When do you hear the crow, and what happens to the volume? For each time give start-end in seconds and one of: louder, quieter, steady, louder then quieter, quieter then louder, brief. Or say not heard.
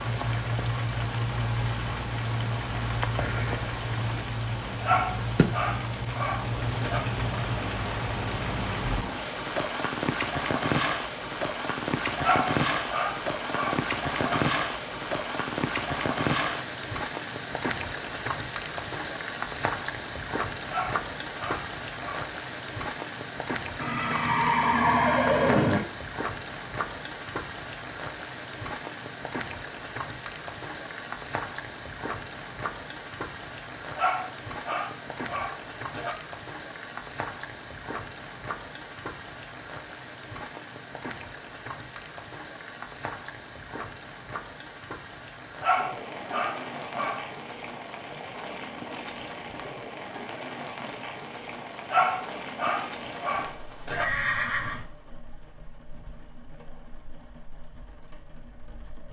not heard.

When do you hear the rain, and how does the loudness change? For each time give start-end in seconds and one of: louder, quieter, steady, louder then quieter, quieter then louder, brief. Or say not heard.
0.0-59.0 quieter.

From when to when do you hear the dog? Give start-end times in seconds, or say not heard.
4.8-7.0, 12.2-14.4, 20.7-22.2, 34.0-36.1, 45.6-47.2, 51.9-54.0.